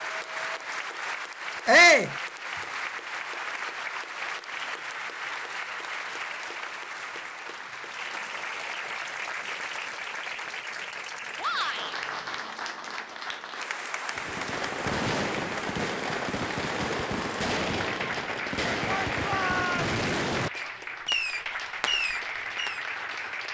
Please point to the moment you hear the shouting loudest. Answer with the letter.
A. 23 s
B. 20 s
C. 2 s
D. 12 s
C.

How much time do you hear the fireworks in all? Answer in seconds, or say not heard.
9 s.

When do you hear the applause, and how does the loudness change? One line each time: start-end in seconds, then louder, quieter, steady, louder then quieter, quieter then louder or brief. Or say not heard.
0.0-23.4 steady.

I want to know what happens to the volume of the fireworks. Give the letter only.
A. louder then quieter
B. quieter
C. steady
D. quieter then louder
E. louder
C.